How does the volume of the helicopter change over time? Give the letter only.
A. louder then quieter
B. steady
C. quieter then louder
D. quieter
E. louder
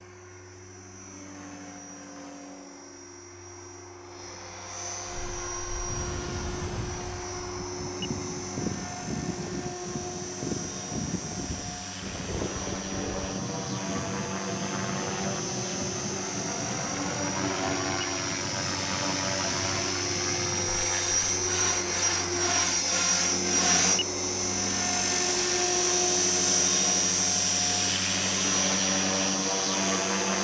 E.